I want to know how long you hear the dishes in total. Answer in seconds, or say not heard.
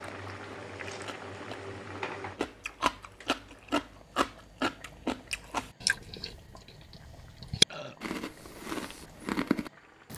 not heard.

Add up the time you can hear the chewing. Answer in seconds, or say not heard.
10 s.